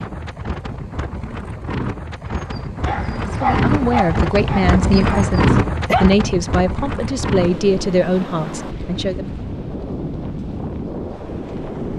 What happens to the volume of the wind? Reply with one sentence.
The loudness of the wind goes up, then down.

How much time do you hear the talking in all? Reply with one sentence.
You can hear the talking for 6 seconds altogether.